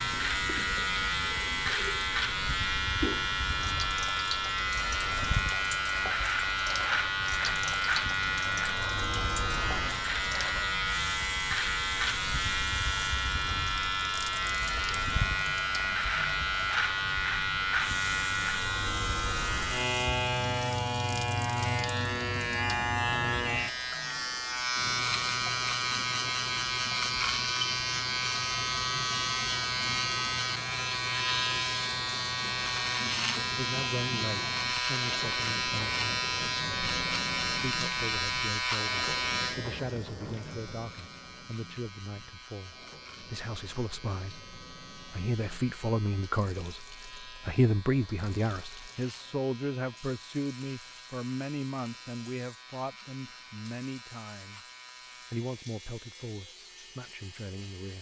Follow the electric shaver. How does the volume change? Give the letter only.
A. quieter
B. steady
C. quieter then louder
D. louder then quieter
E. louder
A.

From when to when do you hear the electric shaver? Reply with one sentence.
The electric shaver can be heard from 0.0 to 57.9 s.